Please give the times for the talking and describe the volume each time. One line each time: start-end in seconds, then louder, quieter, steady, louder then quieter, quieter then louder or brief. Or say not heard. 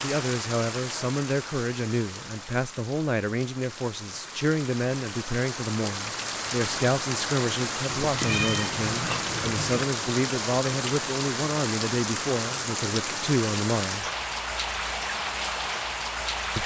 0.0-14.1 steady.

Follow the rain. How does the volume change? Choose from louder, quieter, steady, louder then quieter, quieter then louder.
louder.